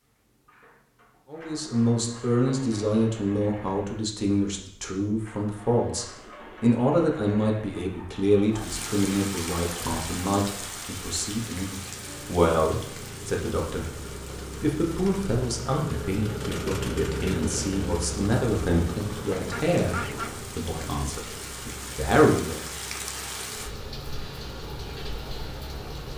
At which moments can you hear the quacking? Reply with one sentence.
You can hear the quacking from 19.1 to 20.4 s.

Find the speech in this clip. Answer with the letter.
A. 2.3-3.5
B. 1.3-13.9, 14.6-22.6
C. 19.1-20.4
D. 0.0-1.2
B.